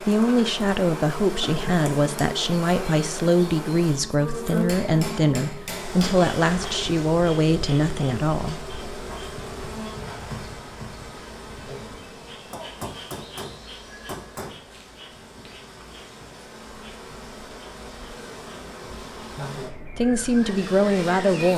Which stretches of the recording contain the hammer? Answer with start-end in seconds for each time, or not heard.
4.7-6.2, 12.5-14.6.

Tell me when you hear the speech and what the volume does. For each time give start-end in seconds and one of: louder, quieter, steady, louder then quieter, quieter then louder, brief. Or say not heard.
0.0-8.7 steady
19.9-21.5 brief.